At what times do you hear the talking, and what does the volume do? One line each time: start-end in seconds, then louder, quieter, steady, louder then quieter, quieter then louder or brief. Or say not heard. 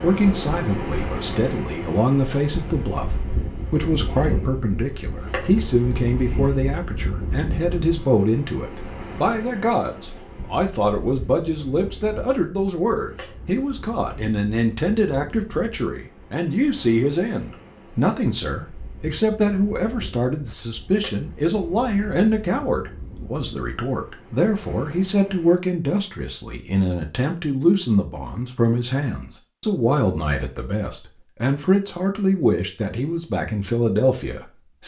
0.0-34.8 steady.